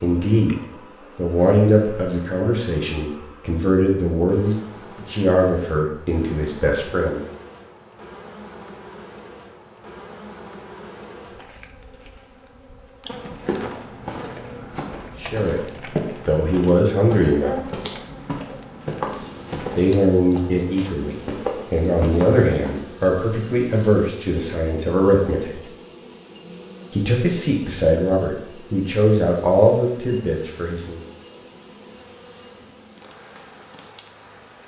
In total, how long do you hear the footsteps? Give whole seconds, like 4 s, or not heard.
10 s.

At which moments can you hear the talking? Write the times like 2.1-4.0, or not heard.
0.0-7.2, 15.2-17.6, 19.8-25.6, 26.9-31.0.